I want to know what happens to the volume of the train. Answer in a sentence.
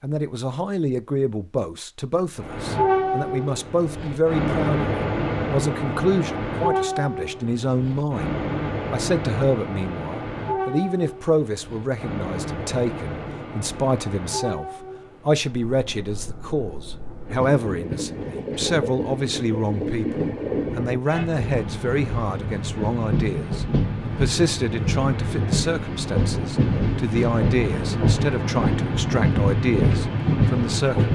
The loudness of the train goes down, then up.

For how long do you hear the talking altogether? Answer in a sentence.
The talking can be heard for 31 seconds in total.